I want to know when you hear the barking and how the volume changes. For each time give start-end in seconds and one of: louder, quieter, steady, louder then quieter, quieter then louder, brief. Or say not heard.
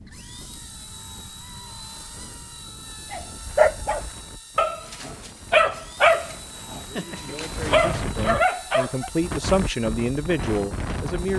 3.1-9.1 quieter then louder.